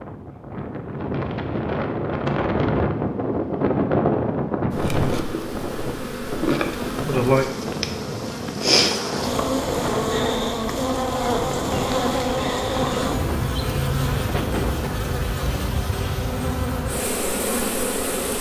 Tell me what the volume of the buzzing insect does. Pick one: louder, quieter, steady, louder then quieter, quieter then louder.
steady.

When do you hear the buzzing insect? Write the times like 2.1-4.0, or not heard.
4.7-18.3.